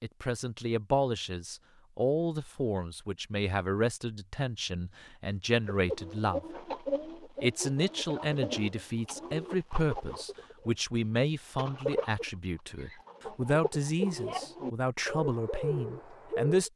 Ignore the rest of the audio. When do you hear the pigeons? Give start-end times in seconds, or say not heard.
5.7-10.8, 11.6-16.7.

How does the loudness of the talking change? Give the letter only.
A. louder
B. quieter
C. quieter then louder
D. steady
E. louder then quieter
D.